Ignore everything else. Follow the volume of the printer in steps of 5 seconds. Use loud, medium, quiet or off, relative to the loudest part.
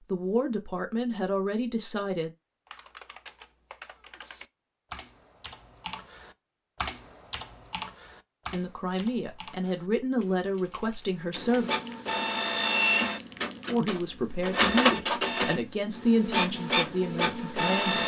off, off, loud, loud.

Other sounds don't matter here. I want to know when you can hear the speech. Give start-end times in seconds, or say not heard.
0.1-2.3, 8.4-11.7, 13.7-18.0.